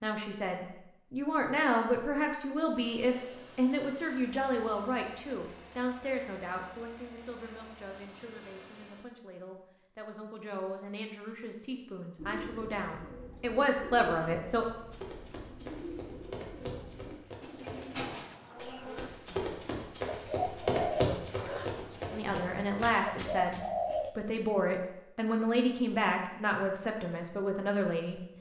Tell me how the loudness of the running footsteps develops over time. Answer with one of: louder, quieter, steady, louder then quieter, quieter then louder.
louder then quieter.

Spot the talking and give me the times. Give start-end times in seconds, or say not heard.
0.0-14.7, 22.1-28.2.